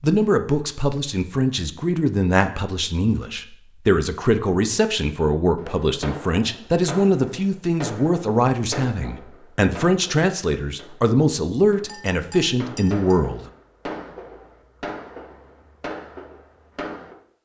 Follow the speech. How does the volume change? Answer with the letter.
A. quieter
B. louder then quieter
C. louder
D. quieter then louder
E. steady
E.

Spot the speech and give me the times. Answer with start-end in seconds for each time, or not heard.
0.0-13.4.